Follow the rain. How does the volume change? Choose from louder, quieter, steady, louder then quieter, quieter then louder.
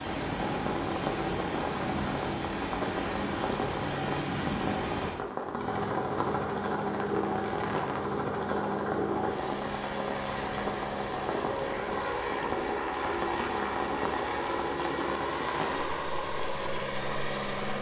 steady.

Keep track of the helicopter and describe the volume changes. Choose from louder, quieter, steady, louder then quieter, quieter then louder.
steady.